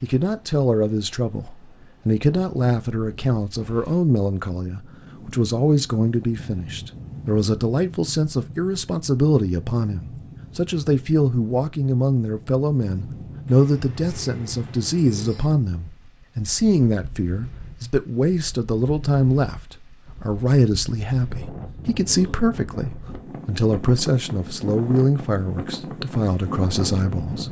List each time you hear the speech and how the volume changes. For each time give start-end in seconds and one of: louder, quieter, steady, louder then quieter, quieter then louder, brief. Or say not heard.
0.0-27.4 steady.